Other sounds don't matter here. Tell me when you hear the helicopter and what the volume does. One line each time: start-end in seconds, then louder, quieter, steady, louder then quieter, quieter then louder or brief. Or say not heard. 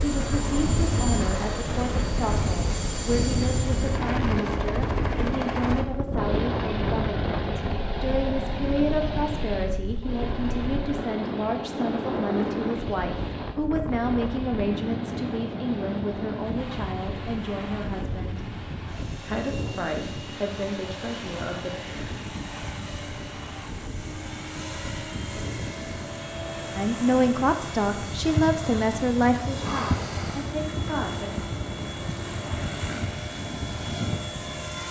0.0-34.8 quieter then louder.